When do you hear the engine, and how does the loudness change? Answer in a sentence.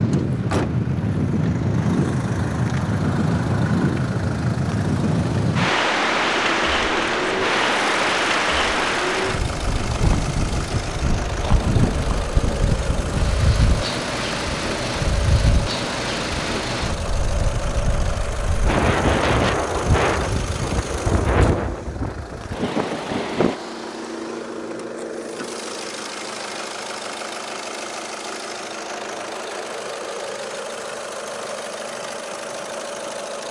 The engine can be heard from 0.0 to 33.4 s, at a steady volume.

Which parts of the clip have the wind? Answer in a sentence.
The wind can be heard from 0.0 to 23.6 s.